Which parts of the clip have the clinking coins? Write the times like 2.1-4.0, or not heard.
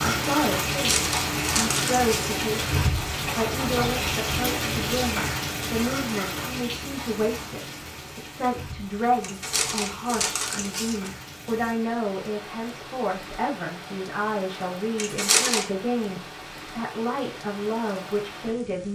not heard.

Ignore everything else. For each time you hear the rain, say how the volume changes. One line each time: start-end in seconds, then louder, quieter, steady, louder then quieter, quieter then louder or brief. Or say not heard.
0.0-18.9 quieter.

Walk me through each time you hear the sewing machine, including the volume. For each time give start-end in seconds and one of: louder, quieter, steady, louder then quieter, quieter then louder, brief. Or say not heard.
not heard.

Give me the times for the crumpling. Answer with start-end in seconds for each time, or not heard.
0.7-2.4, 9.2-11.1, 14.9-15.7.